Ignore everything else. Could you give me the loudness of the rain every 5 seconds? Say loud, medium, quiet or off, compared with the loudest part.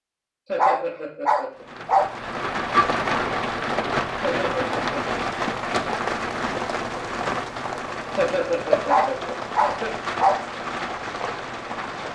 loud, loud, medium.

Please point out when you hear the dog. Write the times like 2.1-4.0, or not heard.
0.6-2.1, 8.8-10.4.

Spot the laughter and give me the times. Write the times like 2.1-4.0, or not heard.
0.5-1.6, 4.2-5.0, 8.2-9.9.